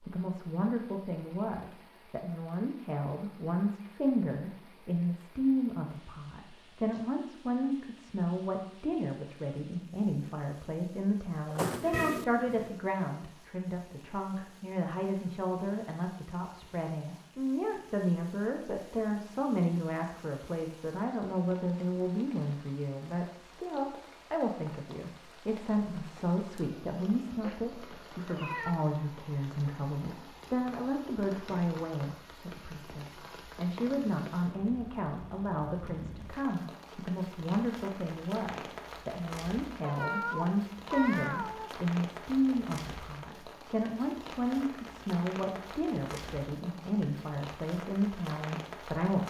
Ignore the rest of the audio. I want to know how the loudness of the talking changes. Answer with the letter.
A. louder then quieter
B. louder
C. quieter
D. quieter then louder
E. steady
E.